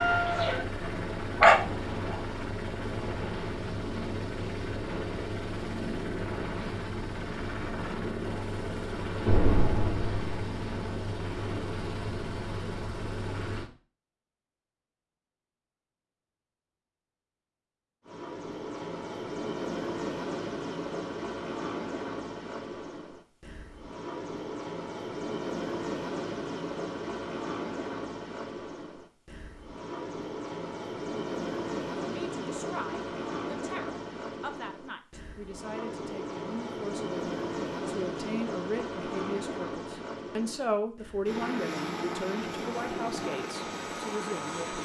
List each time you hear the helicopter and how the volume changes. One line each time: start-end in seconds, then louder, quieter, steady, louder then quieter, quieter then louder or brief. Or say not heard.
0.0-13.7 steady
18.1-44.7 steady.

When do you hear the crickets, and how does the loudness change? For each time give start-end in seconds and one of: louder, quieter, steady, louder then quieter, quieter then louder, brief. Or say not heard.
not heard.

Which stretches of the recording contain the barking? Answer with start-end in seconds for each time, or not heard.
0.0-2.2.